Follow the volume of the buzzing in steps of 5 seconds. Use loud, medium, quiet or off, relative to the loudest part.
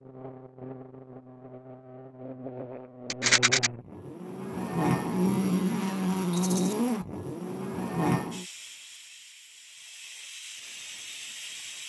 medium, loud, off.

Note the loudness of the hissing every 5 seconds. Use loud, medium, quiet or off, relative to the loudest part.
off, medium, loud.